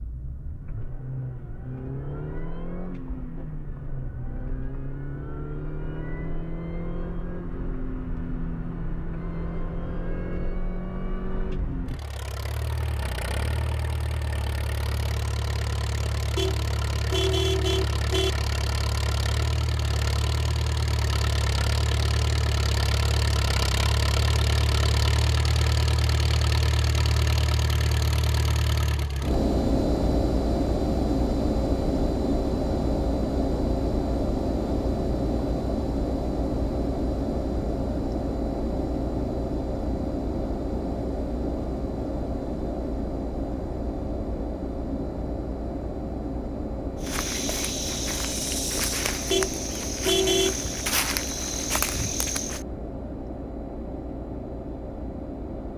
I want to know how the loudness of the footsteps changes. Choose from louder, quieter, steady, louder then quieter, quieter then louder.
steady.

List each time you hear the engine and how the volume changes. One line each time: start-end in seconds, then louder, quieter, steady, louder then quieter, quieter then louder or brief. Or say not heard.
0.0-55.7 louder then quieter.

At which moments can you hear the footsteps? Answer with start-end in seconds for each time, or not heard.
47.0-52.6.